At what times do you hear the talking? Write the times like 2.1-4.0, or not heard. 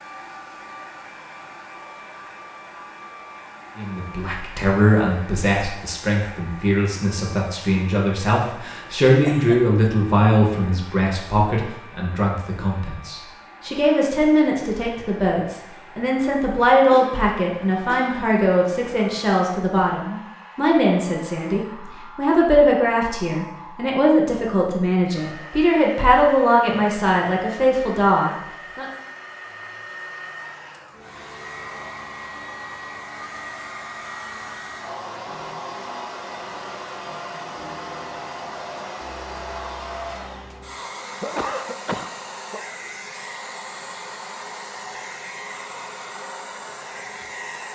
3.8-28.9.